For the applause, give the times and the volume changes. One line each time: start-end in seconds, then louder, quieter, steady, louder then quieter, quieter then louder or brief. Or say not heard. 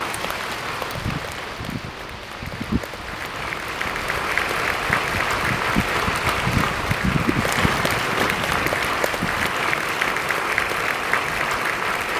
0.0-12.1 louder.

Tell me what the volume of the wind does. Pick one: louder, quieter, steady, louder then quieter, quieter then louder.
louder then quieter.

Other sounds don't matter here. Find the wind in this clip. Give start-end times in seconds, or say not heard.
0.0-9.6.